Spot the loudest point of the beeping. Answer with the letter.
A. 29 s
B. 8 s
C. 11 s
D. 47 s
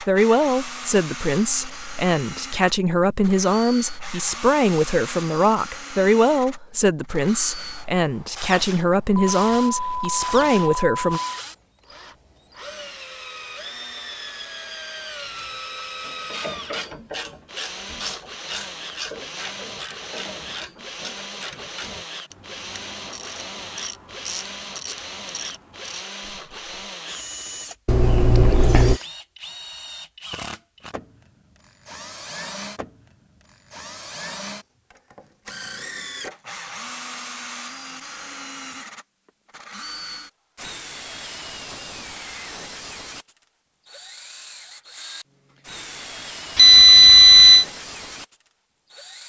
D.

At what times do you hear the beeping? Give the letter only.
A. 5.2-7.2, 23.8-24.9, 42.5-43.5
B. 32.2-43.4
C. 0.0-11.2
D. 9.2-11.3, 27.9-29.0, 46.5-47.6
D.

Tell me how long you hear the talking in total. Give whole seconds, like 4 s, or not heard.
11 s.